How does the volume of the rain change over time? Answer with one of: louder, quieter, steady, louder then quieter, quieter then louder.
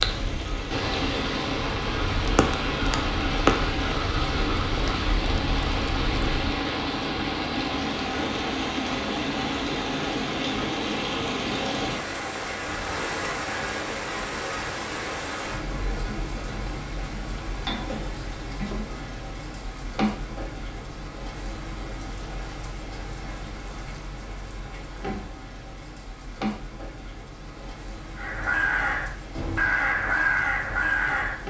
quieter.